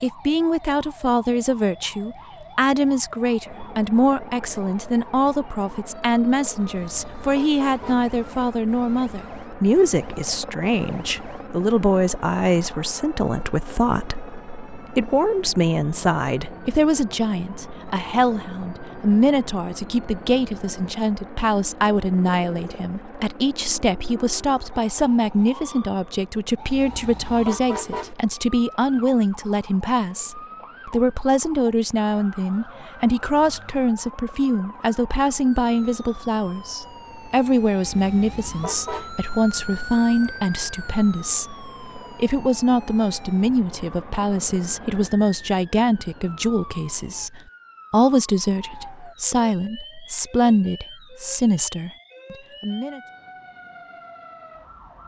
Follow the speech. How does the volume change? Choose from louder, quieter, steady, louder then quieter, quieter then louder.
steady.